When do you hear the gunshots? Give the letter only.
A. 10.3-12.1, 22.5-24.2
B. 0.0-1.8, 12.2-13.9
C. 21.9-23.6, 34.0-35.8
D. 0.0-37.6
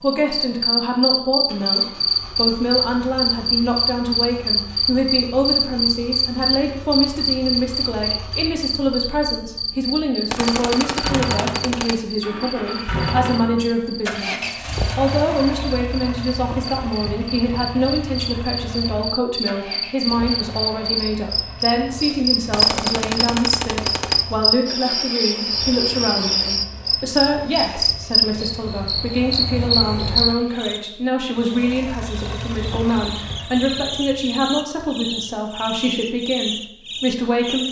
A.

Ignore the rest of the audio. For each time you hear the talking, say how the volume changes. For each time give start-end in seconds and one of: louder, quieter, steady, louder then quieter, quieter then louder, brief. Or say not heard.
0.0-37.6 steady.